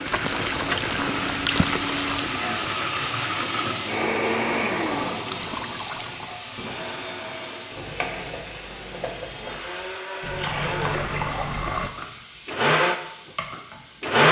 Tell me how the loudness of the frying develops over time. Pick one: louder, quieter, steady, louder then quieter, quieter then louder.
quieter.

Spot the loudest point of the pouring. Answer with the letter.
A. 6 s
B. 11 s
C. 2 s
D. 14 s
C.